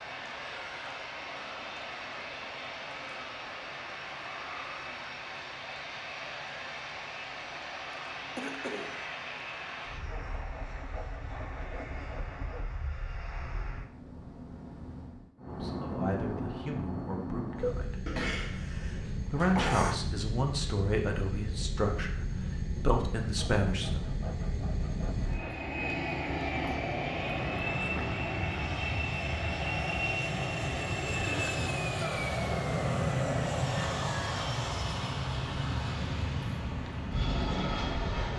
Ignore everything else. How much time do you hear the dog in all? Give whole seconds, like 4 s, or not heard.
not heard.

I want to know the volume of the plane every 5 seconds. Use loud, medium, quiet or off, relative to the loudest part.
medium, medium, quiet, medium, medium, loud, loud, loud.